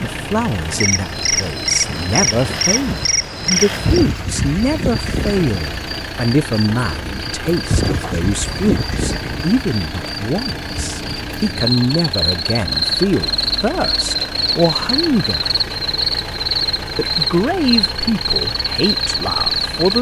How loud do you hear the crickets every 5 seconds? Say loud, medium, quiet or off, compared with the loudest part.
loud, medium, loud, loud.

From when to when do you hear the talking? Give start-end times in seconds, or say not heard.
0.0-15.6, 16.9-19.9.